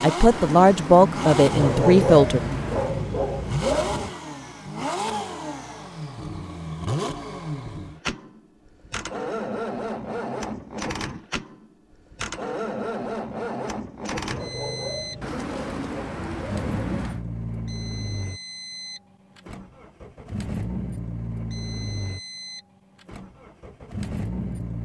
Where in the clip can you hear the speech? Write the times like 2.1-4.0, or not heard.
0.0-2.4.